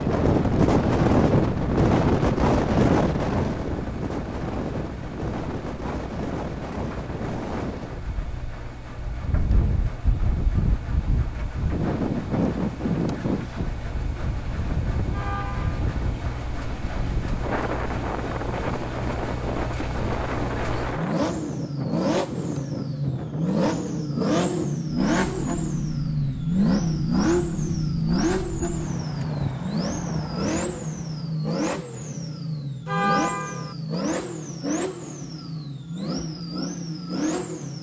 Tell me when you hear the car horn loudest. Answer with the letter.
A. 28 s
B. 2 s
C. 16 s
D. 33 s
D.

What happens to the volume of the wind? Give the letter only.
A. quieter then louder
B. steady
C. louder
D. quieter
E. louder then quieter
D.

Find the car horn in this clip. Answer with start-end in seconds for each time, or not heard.
15.1-15.8, 32.9-33.8.